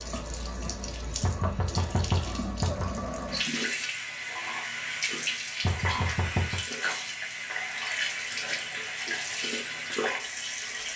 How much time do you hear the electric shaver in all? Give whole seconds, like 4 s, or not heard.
not heard.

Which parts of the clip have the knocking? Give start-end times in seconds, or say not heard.
1.2-3.0, 5.6-6.6.